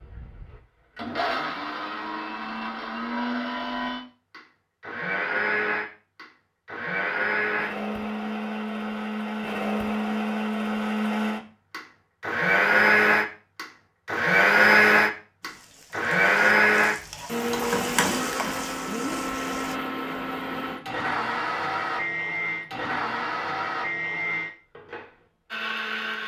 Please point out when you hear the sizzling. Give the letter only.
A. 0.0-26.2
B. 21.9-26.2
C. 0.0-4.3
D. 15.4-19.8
D.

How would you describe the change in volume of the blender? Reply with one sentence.
The loudness of the blender goes up, then down.